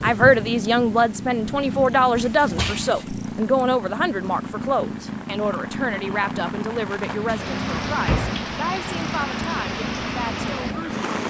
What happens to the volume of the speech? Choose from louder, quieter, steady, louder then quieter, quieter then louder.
quieter.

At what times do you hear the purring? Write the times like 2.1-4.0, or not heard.
0.0-11.2.